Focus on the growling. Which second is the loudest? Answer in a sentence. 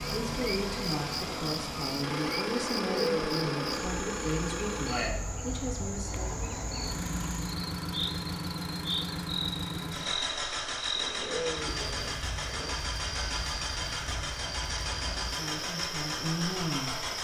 The loudest moment of the growling is at 3 seconds.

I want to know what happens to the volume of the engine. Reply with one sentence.
The loudness of the engine stays about the same.